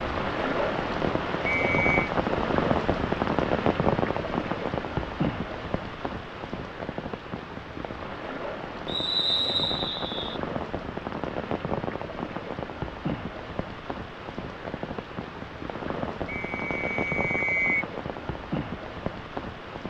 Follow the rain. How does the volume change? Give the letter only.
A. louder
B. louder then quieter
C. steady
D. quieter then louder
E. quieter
E.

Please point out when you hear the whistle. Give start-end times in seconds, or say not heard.
1.4-2.1, 8.8-10.4, 16.2-17.9.